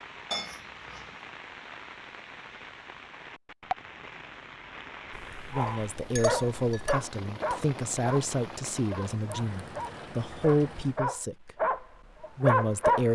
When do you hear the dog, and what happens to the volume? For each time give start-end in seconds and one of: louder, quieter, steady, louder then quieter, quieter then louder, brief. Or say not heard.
5.5-13.0 quieter then louder.